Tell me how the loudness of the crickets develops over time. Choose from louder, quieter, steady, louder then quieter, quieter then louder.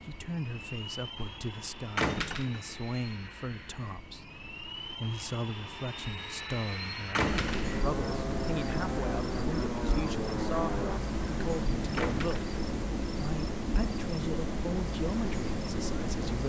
louder.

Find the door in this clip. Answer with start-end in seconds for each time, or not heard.
1.9-2.8, 7.1-7.7, 11.9-12.5.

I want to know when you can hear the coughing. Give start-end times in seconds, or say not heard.
not heard.